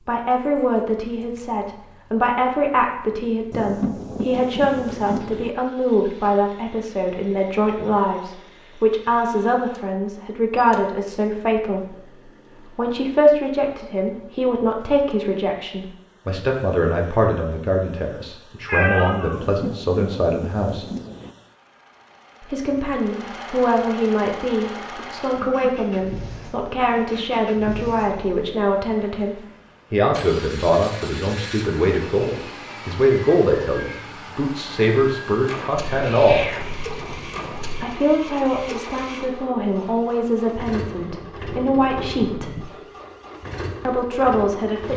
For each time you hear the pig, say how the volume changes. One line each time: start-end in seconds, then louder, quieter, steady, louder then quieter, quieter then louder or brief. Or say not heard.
not heard.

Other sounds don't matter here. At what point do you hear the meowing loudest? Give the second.
19 s.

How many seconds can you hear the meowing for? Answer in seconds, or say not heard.
3 s.